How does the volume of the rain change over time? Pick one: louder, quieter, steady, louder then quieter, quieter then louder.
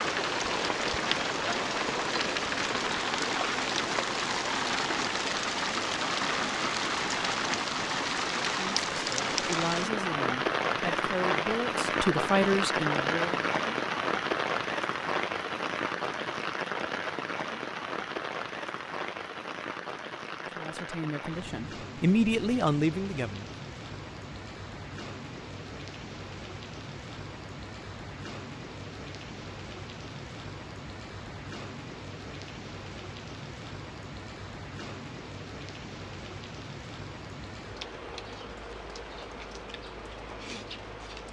quieter.